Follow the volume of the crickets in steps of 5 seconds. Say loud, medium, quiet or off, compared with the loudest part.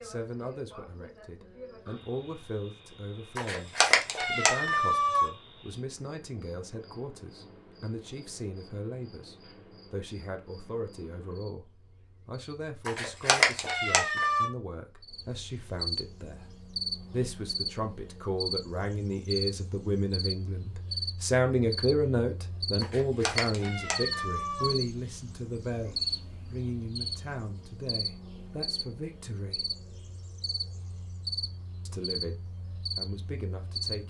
quiet, quiet, quiet, loud, loud, loud, loud.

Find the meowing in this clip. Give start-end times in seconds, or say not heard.
3.4-5.3, 12.8-14.5, 22.8-24.8.